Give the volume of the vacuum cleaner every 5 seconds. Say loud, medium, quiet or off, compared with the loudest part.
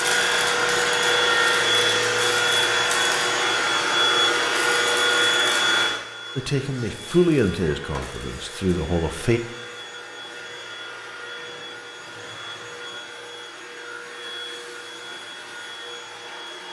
loud, medium, quiet, quiet.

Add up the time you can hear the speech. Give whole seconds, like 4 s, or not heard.
3 s.